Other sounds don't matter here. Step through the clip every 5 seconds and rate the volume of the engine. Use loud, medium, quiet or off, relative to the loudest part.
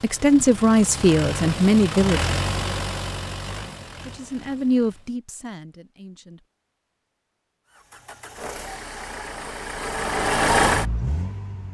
medium, quiet, loud.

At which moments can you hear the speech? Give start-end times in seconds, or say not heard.
0.0-2.2, 4.0-6.5.